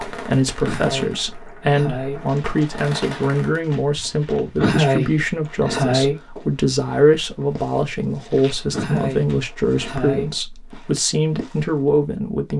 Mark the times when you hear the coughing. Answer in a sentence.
The coughing can be heard from 0.6 to 2.2 s, from 4.5 to 6.2 s and from 8.7 to 10.3 s.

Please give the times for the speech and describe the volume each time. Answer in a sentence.
You can hear the speech from 0.1 to 12.5 s, at a steady volume.